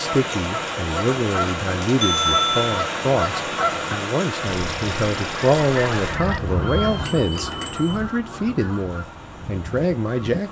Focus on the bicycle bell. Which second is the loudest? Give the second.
2 s.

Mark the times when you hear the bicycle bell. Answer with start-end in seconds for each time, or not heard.
2.0-2.8, 6.1-8.0.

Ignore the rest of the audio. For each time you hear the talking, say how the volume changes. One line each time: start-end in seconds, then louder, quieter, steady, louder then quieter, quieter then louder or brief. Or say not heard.
0.0-10.4 steady.